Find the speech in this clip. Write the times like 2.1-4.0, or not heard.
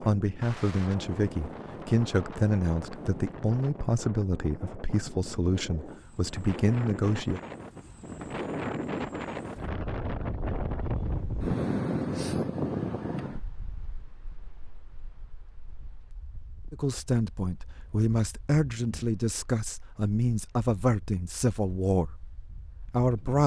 0.0-7.4, 16.7-22.2, 22.9-23.4.